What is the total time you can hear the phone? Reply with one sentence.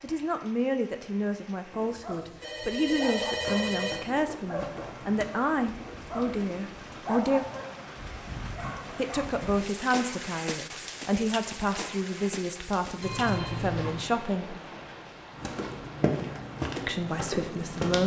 You can hear the phone for 3 seconds altogether.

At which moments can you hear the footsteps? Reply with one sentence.
You can hear the footsteps from 3.4 to 5.3 s and from 15.3 to 18.0 s.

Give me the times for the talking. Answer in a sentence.
You can hear the talking from 0.0 to 7.5 s, from 8.9 to 14.6 s and from 16.9 to 18.0 s.